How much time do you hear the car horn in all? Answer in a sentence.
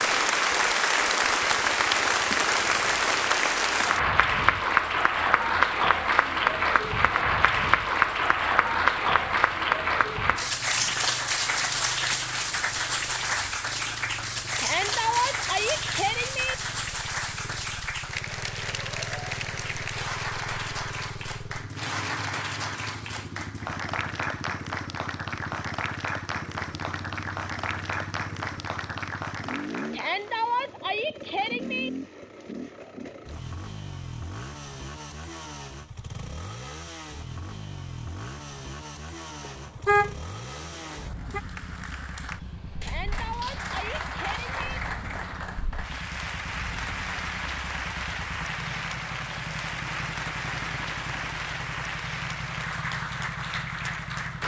You can hear the car horn for 2 seconds altogether.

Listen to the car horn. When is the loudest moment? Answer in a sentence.
The volume of the car horn peaks at 40 seconds.